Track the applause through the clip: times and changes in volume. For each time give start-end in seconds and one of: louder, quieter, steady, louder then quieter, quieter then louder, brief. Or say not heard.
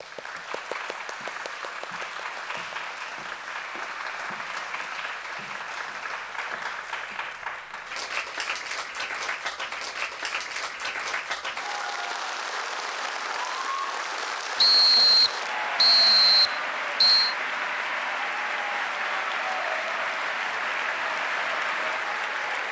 0.0-22.6 louder.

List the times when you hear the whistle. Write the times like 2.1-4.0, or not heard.
14.6-17.4.